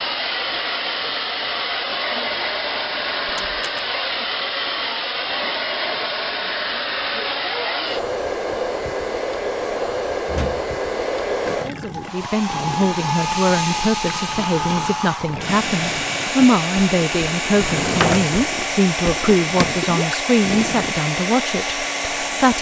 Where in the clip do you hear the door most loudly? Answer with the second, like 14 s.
18 s.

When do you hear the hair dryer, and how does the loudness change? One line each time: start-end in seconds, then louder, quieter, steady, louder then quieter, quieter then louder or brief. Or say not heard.
0.0-22.5 steady.